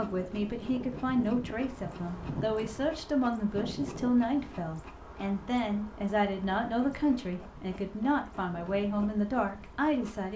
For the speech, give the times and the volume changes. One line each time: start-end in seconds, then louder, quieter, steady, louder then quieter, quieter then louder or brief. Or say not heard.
0.0-10.3 steady.